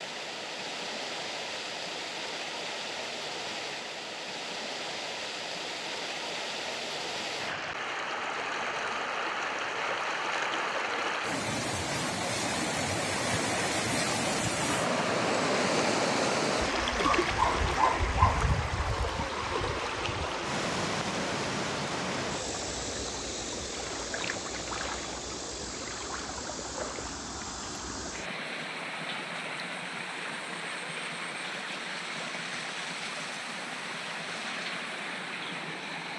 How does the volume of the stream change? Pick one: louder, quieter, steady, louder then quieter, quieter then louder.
louder then quieter.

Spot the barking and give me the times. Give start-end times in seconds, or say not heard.
17.0-18.4.